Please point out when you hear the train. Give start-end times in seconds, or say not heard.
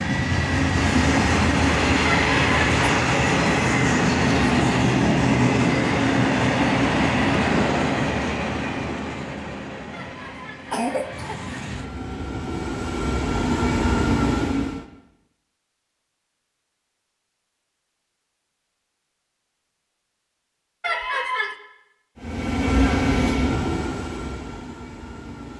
0.0-14.8, 22.1-25.5.